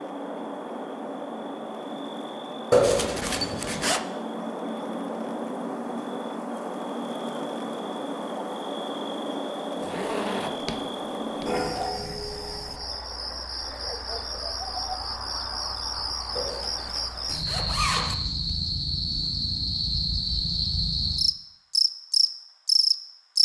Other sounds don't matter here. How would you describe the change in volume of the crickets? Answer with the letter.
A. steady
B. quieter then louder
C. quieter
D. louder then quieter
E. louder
E.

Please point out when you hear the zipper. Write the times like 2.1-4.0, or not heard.
2.7-4.0, 9.8-11.9, 16.4-18.1.